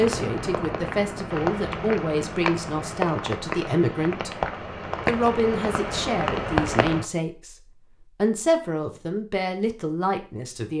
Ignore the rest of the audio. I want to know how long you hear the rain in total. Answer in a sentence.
You can hear the rain for 7 seconds altogether.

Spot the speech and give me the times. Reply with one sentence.
The speech can be heard from 0.0 to 4.3 s and from 5.0 to 10.7 s.